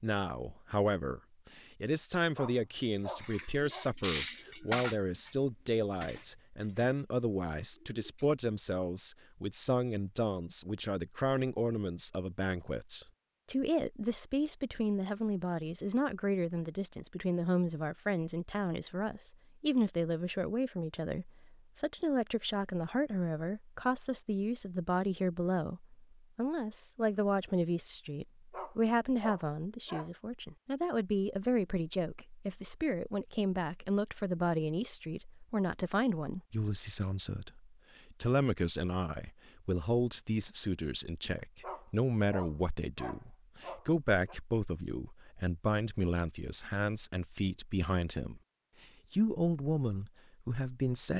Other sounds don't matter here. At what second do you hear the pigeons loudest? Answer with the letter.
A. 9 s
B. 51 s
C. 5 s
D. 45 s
C.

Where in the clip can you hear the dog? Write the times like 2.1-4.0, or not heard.
2.4-3.9, 28.5-30.1, 41.6-44.4.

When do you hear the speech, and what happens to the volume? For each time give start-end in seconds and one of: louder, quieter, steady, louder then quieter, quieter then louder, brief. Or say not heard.
0.0-48.4 steady
49.1-51.1 brief.